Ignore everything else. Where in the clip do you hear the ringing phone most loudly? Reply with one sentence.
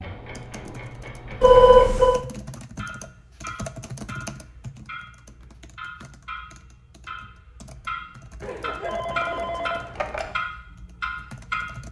The loudest moment of the ringing phone is at 2 seconds.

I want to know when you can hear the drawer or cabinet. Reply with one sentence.
The drawer or cabinet can't be heard in this clip.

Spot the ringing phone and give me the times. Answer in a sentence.
You can hear the ringing phone from 1.4 to 2.2 s and from 8.4 to 10.3 s.